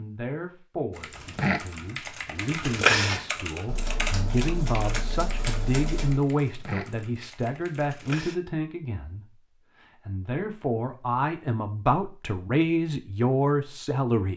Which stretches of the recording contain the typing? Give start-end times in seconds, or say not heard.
0.9-8.3.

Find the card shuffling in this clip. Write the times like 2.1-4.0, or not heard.
3.6-6.2.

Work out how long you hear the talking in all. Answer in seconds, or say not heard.
14 s.